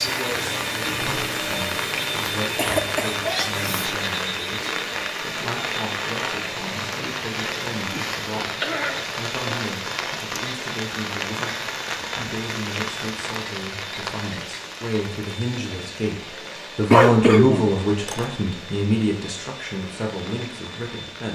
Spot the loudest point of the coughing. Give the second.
17 s.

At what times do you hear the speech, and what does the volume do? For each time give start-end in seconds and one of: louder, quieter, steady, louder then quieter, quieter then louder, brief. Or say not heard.
0.0-21.3 louder.